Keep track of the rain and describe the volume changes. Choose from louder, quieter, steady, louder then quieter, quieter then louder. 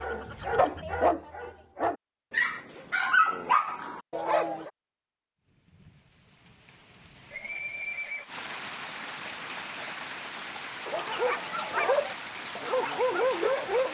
louder.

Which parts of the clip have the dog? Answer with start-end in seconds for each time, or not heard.
0.0-4.7, 10.8-13.8.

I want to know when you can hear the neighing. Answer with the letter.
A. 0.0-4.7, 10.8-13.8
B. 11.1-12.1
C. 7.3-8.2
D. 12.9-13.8
C.